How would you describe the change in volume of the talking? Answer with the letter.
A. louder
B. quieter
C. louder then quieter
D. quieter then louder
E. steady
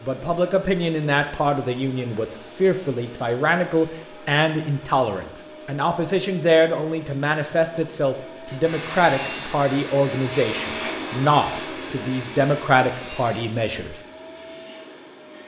E.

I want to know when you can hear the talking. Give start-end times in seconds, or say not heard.
0.0-13.9.